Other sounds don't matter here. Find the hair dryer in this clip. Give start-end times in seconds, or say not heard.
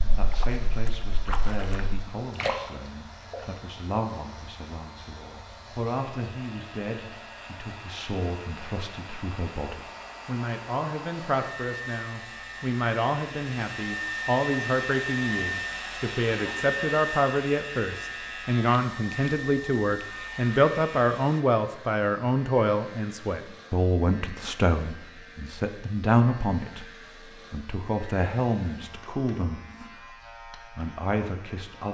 0.0-21.4.